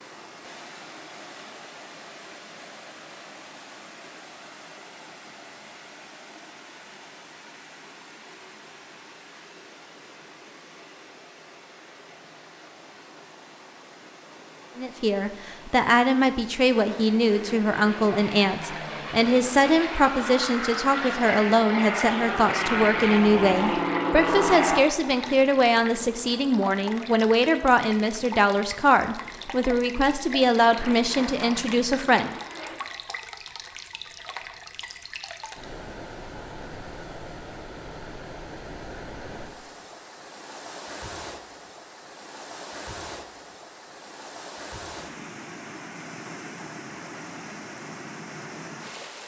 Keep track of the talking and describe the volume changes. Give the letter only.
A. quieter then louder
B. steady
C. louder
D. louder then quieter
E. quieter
B.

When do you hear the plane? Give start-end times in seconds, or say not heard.
16.7-32.8.